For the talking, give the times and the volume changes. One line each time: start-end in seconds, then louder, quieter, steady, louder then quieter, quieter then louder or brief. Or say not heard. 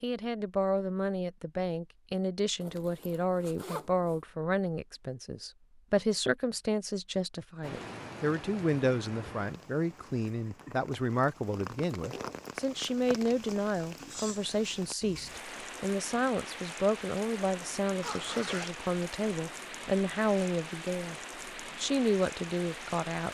0.0-21.1 steady
21.8-23.3 brief.